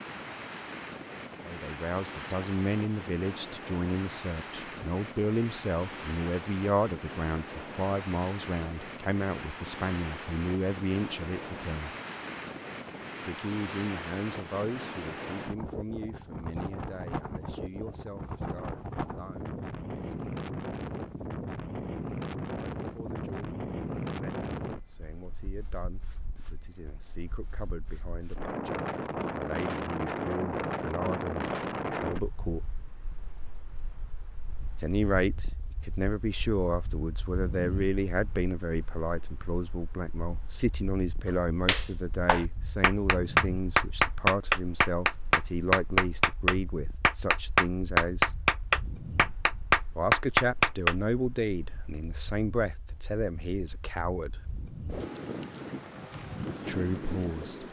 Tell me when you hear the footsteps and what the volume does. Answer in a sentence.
You can't hear the footsteps here.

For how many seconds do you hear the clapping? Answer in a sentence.
You can hear the clapping for 9 seconds altogether.